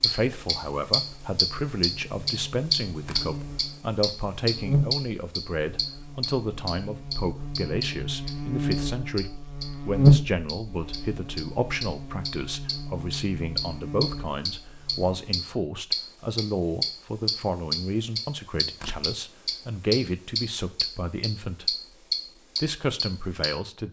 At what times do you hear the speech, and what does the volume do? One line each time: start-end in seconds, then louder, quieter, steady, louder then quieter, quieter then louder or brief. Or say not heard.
0.0-21.8 steady
22.6-23.8 brief.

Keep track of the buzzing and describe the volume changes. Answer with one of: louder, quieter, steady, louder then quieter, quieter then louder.
louder then quieter.